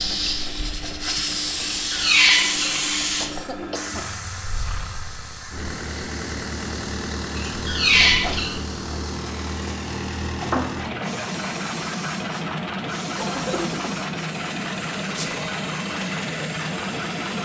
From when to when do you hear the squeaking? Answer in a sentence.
You can hear the squeaking from 1.6 to 2.8 s and from 7.3 to 8.6 s.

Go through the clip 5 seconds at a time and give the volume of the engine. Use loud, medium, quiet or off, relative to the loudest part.
medium, loud, loud, loud.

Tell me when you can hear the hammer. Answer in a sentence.
You can't hear the hammer here.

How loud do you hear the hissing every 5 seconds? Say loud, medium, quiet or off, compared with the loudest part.
loud, quiet, medium, medium.